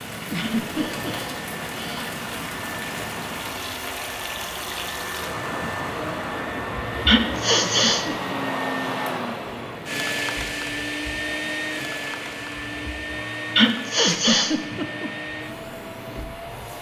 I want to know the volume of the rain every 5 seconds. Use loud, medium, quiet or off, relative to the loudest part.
loud, loud, medium, medium.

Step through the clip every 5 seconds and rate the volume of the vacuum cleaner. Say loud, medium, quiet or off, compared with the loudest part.
medium, loud, loud, medium.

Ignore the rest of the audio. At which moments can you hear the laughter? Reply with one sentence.
The laughter can be heard from 0.3 to 1.3 s, from 7.6 to 8.1 s and from 14.0 to 15.1 s.